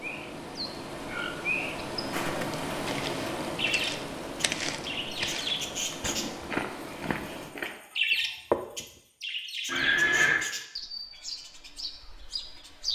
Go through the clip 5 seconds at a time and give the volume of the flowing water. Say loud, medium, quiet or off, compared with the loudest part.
loud, medium, off.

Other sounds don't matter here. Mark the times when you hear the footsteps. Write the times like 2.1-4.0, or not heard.
2.1-8.8.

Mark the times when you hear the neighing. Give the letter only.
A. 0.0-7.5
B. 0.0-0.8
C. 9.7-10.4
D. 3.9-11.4
C.